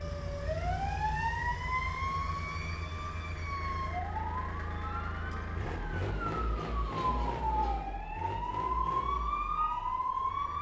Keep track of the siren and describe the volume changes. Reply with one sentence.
The loudness of the siren goes down, then up.